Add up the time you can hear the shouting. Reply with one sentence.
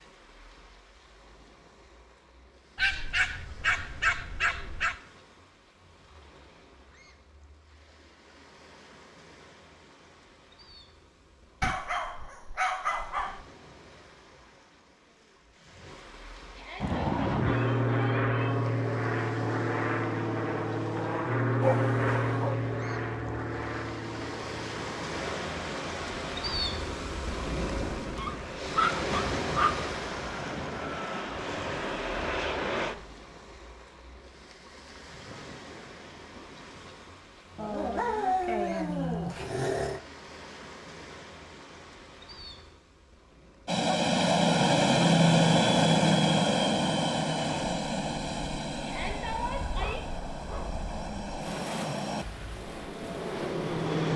The shouting can be heard for 3 seconds in total.